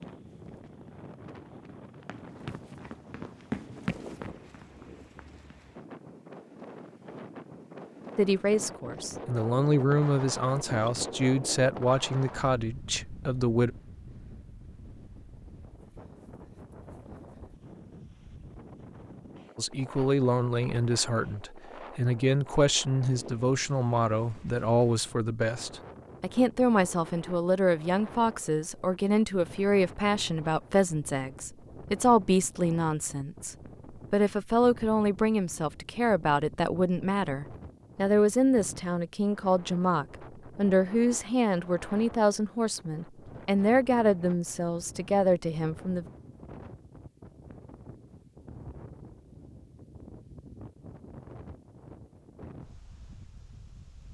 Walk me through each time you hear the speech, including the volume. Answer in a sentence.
The speech can be heard from 8.2 to 13.7 s, getting louder then quieter; and from 19.6 to 46.0 s, at a steady volume.